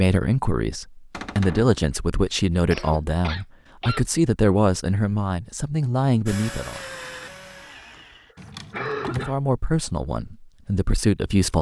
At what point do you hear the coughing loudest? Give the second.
9 s.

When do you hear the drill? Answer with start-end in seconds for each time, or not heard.
6.2-8.3.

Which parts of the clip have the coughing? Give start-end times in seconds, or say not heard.
2.7-4.0, 8.3-9.3.